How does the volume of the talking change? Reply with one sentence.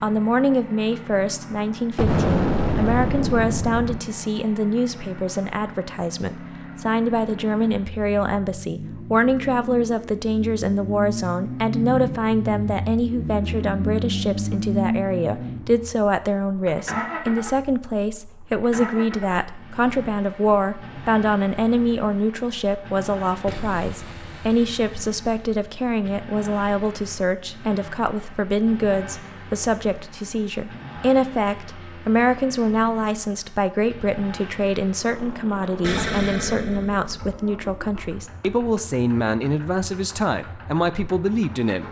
The loudness of the talking stays about the same.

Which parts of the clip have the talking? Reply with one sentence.
The talking can be heard from 0.0 to 41.8 s.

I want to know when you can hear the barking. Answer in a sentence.
The barking can't be heard in this clip.